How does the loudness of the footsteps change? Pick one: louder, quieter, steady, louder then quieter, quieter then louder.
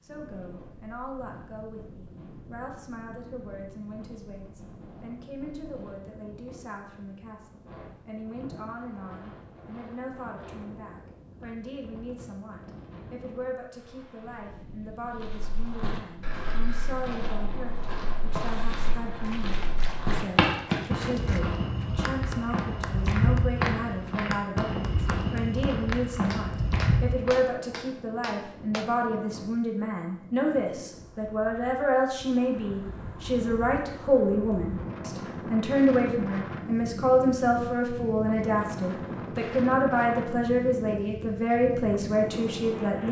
louder.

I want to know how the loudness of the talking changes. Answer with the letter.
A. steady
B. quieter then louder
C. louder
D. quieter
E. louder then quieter
C.